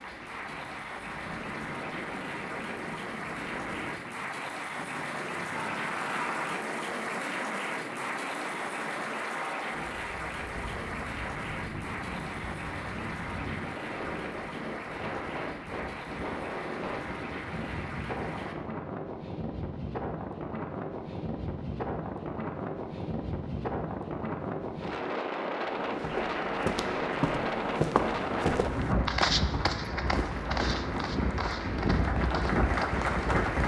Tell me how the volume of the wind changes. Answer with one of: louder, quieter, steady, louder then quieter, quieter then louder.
louder.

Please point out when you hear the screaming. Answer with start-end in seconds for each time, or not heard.
5.7-6.7.